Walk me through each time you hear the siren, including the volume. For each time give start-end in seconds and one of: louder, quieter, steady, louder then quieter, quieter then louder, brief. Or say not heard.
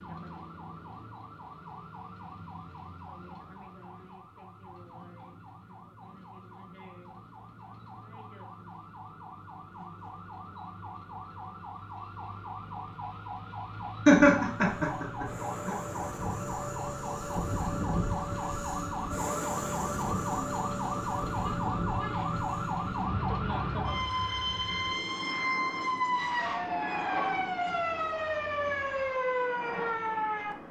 0.0-30.6 louder.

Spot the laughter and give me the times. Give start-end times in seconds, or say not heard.
14.1-15.8.